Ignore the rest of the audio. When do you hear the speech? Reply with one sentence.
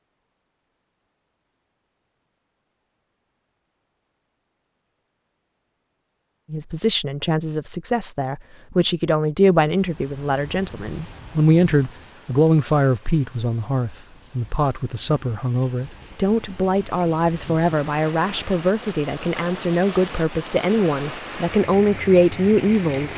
You can hear the speech from 6.5 to 23.1 s.